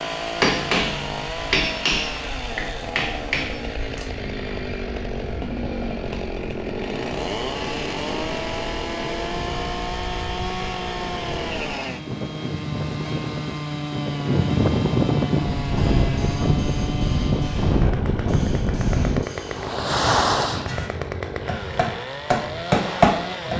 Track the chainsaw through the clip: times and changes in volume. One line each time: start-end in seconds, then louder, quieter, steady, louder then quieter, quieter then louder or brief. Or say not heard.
0.0-23.5 steady.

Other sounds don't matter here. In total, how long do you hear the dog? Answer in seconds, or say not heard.
not heard.